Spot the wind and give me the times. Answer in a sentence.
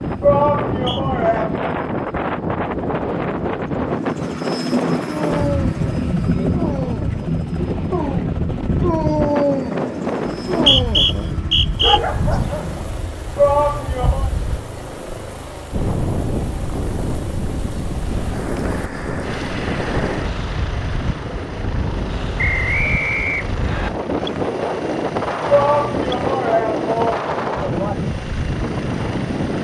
You can hear the wind from 0.0 to 29.5 s.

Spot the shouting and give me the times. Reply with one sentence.
The shouting can be heard from 0.2 to 1.6 s, from 13.3 to 14.3 s and from 25.4 to 27.9 s.